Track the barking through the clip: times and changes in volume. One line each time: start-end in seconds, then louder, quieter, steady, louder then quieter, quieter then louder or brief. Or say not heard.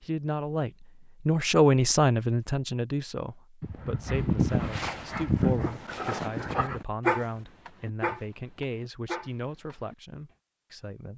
3.6-9.9 quieter.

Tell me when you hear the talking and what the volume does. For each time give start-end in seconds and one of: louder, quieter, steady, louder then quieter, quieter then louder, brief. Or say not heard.
0.0-11.1 quieter.